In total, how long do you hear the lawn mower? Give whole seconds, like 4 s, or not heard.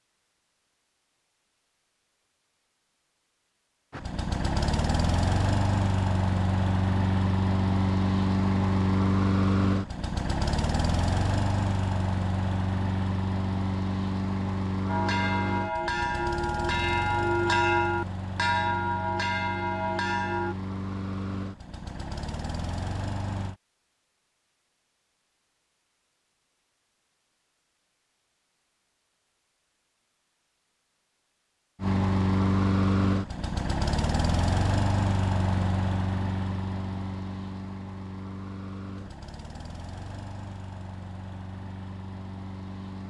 31 s.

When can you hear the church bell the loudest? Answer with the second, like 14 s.
18 s.